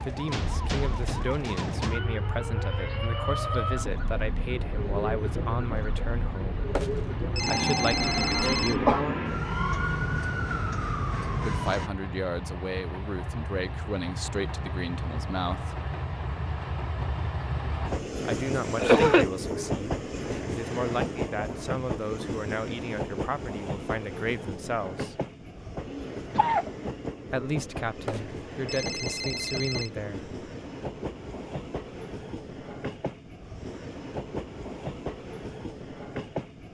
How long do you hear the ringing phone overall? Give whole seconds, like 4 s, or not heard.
4 s.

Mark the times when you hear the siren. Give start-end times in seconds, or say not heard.
0.0-11.9.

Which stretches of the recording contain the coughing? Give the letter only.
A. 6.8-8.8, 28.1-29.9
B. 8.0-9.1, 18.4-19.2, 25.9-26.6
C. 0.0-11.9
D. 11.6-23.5
B.